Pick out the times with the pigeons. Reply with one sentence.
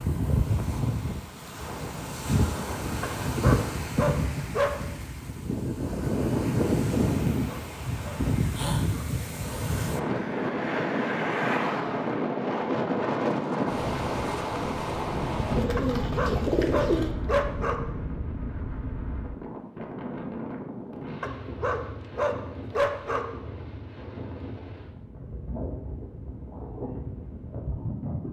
The pigeons can be heard from 15.6 to 17.1 s.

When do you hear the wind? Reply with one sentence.
The wind can be heard from 0.0 to 28.2 s.